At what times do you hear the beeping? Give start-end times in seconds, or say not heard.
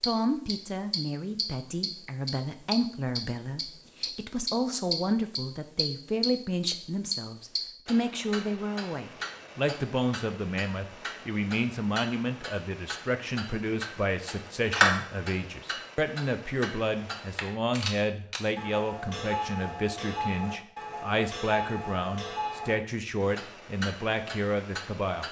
not heard.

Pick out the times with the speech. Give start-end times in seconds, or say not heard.
0.0-25.2.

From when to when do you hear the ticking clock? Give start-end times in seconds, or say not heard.
0.0-25.2.